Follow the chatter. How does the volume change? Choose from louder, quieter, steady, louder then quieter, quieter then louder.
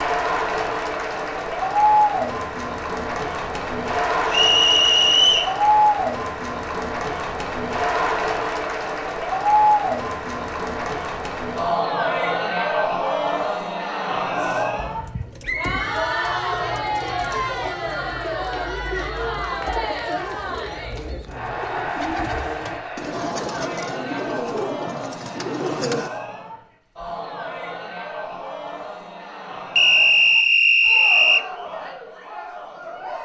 quieter.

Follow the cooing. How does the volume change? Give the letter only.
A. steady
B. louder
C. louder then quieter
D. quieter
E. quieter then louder
B.